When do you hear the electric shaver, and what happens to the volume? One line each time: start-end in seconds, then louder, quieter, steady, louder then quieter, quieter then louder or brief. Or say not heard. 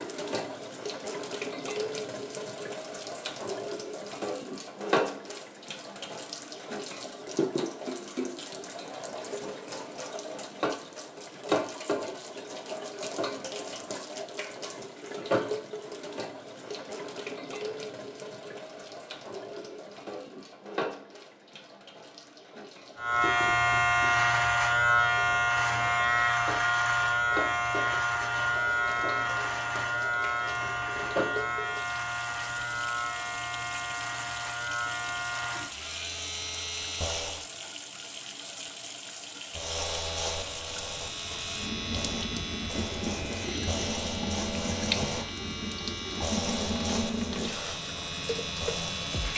22.9-37.5 quieter
39.5-49.3 steady.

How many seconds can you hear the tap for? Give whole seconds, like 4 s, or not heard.
49 s.